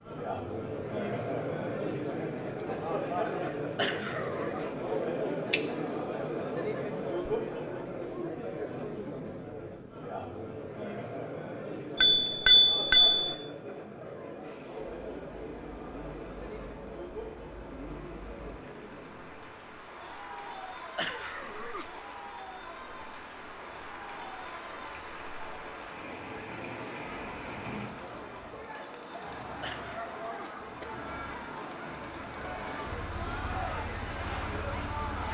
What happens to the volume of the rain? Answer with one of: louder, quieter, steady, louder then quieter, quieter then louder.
louder.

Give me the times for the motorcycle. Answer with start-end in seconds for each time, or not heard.
32.8-35.3.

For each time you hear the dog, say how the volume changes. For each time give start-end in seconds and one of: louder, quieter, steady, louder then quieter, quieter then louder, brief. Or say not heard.
not heard.